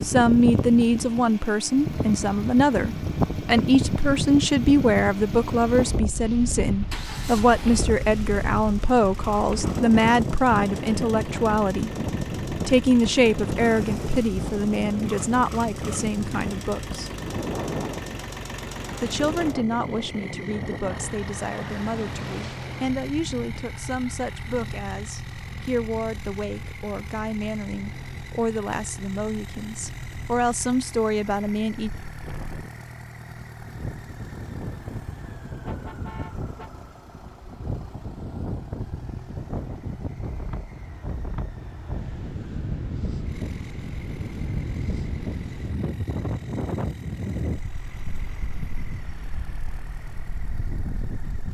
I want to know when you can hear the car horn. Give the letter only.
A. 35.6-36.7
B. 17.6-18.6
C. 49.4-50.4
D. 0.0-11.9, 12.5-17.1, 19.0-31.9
A.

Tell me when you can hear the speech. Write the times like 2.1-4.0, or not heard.
0.0-11.9, 12.5-17.1, 19.0-31.9.